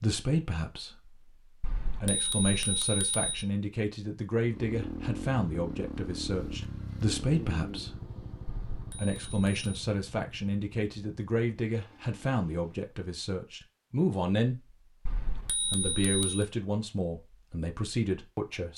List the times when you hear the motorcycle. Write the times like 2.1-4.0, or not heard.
4.4-12.8.